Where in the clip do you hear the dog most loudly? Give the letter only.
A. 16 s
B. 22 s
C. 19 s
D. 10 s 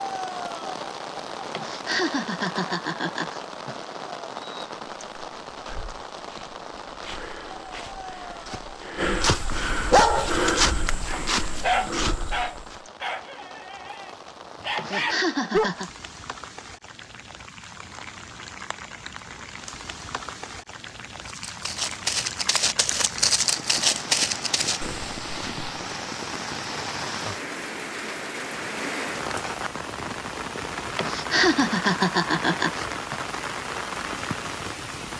D.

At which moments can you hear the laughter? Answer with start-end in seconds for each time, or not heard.
1.5-3.8, 14.8-15.9, 30.9-33.2.